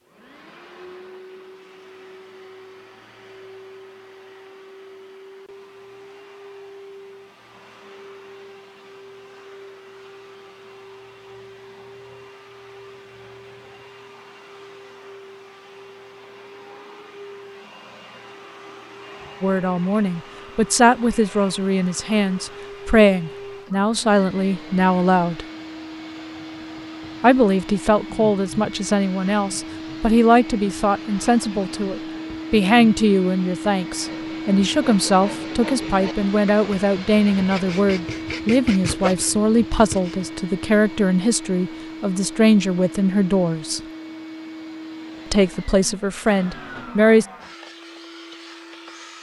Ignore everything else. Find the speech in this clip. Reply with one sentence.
You can hear the speech from 19.4 to 25.4 s, from 27.2 to 43.8 s and from 45.3 to 47.2 s.